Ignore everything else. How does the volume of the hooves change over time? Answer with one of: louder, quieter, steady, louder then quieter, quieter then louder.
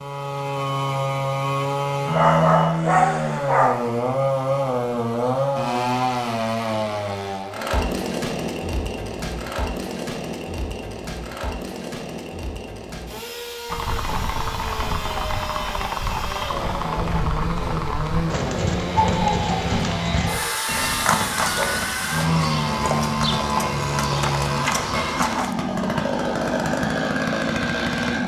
steady.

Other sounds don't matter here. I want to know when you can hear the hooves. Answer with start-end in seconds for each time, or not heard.
13.7-25.6.